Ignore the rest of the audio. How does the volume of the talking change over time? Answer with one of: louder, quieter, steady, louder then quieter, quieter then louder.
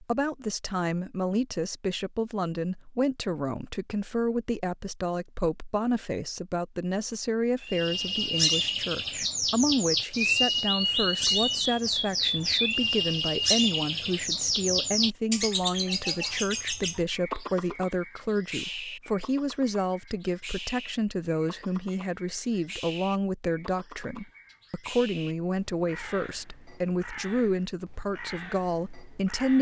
steady.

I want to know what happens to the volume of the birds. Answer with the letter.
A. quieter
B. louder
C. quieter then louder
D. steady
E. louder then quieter
A.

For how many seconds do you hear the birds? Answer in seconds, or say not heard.
22 s.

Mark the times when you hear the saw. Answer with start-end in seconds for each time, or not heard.
not heard.